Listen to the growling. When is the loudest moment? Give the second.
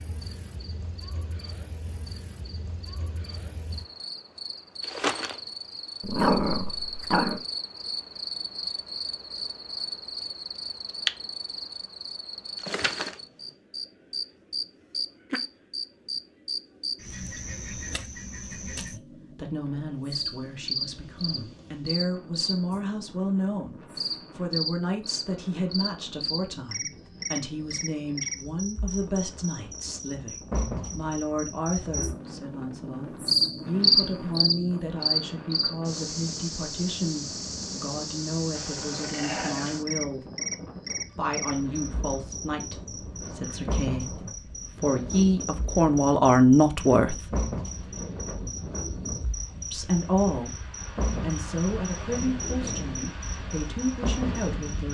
6 s.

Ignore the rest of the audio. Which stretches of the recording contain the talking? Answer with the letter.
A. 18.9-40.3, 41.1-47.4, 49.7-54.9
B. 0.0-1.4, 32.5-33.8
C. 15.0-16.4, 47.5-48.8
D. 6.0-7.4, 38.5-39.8
A.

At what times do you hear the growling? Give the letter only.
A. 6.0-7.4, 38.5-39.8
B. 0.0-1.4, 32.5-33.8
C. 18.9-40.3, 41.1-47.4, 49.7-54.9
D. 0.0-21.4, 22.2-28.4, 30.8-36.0
A.